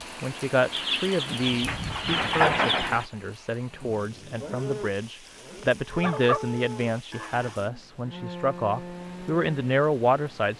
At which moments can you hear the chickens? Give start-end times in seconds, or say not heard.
0.7-3.0, 5.9-7.5.